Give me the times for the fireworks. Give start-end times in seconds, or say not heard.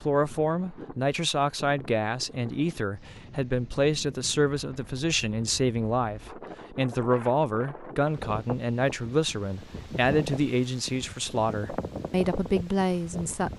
not heard.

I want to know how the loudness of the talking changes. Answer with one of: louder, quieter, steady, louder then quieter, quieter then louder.
steady.